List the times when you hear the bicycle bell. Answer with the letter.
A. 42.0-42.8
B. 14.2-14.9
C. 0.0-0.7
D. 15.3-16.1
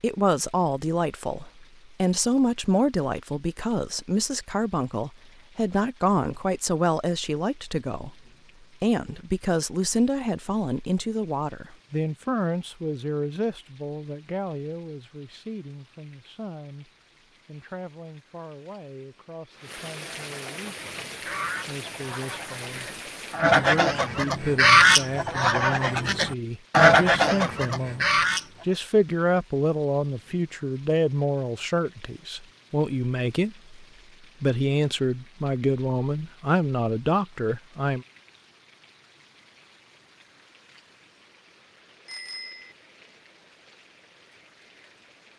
A.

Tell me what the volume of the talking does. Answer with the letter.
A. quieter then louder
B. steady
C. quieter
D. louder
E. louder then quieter
A.